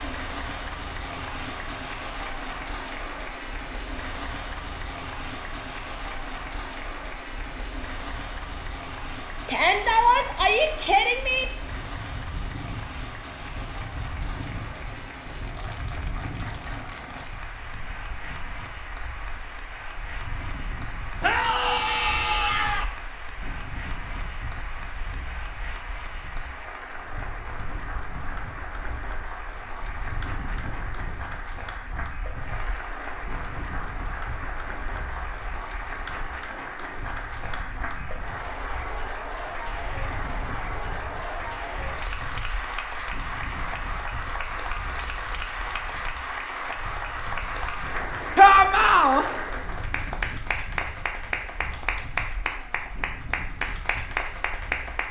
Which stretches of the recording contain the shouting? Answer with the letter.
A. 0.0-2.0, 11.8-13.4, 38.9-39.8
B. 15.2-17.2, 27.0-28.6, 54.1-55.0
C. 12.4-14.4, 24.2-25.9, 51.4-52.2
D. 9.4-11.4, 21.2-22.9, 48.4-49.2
D.